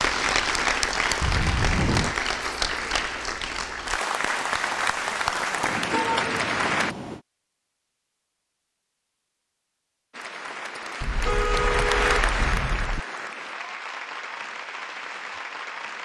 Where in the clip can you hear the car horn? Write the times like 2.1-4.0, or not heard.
1.2-2.1, 5.6-7.2, 11.0-13.0.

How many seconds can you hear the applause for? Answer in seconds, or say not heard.
13 s.